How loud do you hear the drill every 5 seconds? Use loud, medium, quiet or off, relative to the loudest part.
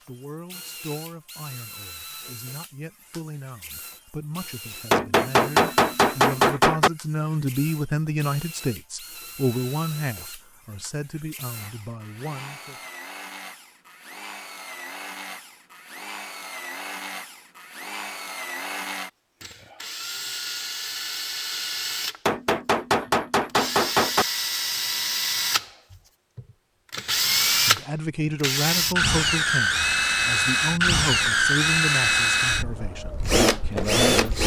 quiet, quiet, quiet, quiet, medium, loud, loud.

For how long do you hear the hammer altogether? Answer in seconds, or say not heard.
4 s.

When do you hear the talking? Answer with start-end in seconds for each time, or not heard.
0.1-12.8, 27.1-34.4.